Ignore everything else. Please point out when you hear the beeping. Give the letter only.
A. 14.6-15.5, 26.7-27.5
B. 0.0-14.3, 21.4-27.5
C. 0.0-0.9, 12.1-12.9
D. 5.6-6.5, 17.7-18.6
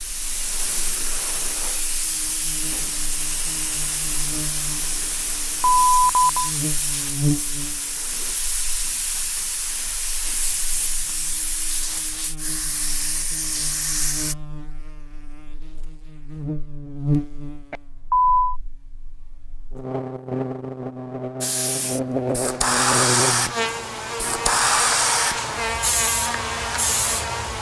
D.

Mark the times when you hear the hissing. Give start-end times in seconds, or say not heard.
0.0-14.3, 21.4-27.5.